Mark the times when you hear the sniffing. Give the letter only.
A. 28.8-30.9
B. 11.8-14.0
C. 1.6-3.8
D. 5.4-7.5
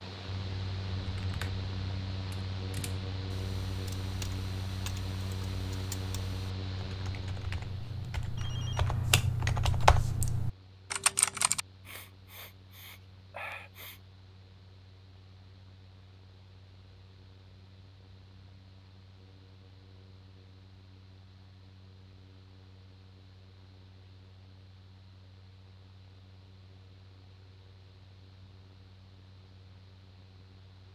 B.